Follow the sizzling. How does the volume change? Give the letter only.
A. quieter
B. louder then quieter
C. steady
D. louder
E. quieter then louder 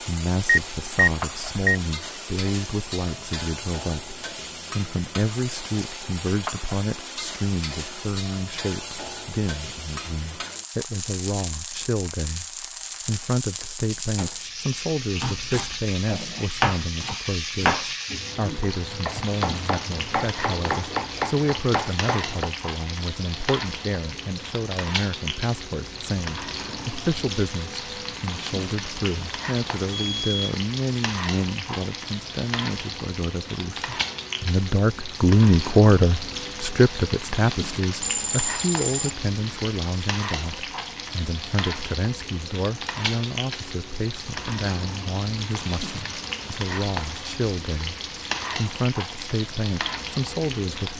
C.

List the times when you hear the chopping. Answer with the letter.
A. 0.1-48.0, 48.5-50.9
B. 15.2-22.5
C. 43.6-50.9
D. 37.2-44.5
B.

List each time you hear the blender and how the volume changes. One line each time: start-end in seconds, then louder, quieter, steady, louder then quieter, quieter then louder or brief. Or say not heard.
not heard.